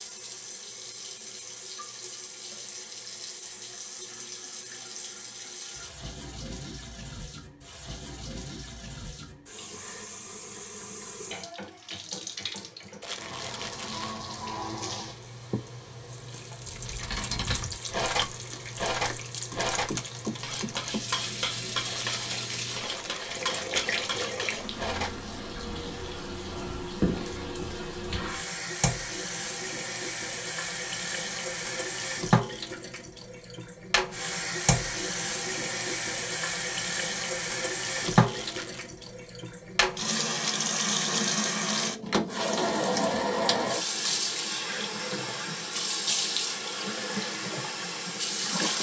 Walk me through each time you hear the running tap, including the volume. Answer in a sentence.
You can hear the running tap from 0.0 to 48.7 s, getting louder.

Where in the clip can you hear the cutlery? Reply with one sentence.
You can hear the cutlery from 16.6 to 25.2 s.